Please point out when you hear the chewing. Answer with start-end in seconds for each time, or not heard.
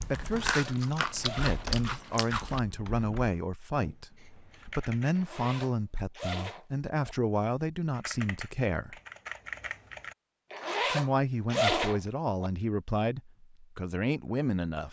0.0-2.6.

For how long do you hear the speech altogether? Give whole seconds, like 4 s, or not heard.
13 s.